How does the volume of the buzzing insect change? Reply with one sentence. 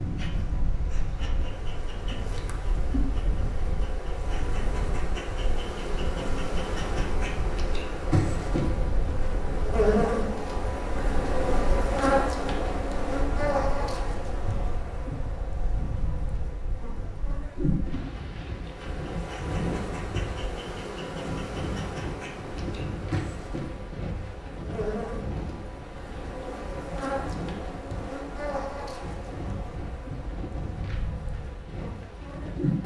The loudness of the buzzing insect goes up, then down.